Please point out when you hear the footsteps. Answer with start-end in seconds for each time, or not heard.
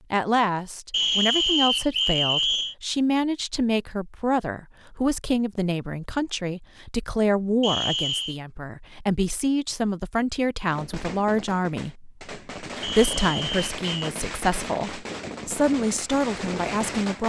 not heard.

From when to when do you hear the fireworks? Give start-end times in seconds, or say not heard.
10.7-17.2.